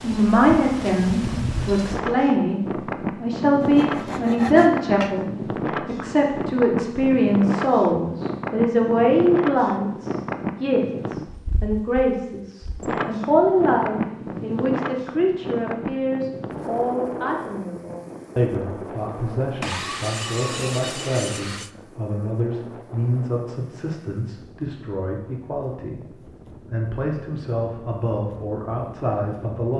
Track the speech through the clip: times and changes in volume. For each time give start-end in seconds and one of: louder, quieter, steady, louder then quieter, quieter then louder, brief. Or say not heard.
0.0-29.7 quieter.